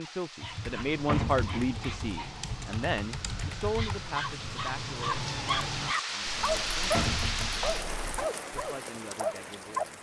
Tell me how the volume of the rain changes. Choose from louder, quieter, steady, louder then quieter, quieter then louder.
louder then quieter.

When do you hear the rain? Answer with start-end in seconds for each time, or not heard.
0.0-9.9.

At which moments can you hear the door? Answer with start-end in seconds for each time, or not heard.
1.1-1.6, 6.9-7.6.